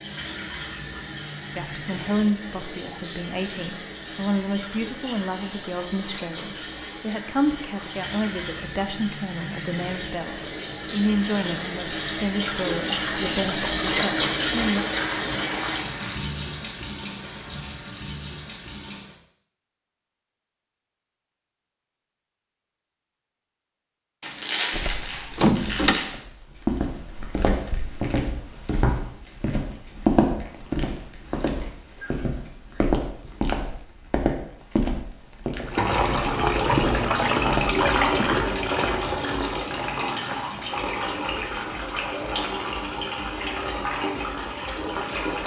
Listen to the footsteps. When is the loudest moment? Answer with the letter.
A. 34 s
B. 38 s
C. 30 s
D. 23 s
C.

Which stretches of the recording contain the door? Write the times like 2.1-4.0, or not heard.
24.7-26.0.